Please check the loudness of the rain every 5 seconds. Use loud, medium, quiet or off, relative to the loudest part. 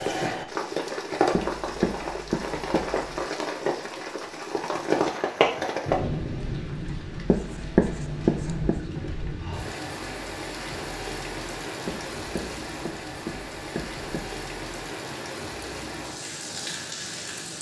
loud, loud, medium, medium.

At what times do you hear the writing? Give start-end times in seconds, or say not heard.
1.3-3.2, 7.2-8.8, 11.8-14.3.